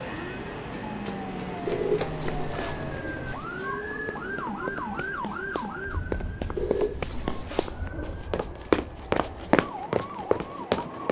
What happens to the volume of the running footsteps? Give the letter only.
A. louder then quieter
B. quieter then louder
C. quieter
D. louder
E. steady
D.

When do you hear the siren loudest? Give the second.
5 s.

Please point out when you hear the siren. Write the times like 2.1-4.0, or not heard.
0.0-11.0.